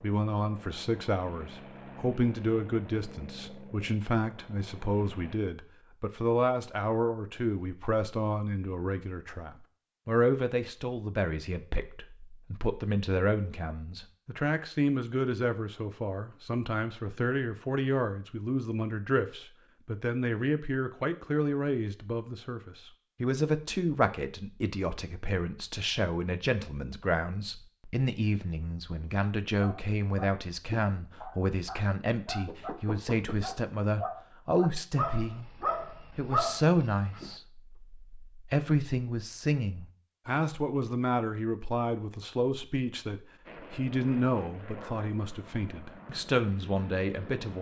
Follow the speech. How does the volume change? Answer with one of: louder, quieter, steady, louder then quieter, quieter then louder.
steady.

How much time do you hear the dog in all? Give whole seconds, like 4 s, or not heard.
8 s.